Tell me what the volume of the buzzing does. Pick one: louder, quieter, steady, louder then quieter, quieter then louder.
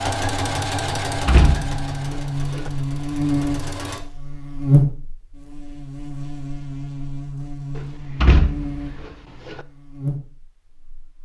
louder then quieter.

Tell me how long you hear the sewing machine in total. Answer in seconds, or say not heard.
4 s.